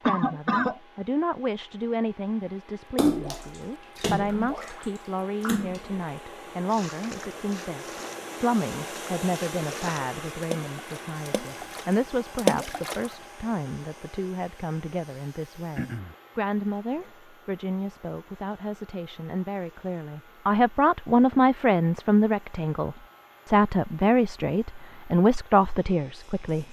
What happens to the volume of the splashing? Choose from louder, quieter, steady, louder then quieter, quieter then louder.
quieter then louder.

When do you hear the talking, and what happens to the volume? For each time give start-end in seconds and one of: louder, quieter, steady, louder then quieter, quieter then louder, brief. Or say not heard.
0.0-26.6 louder.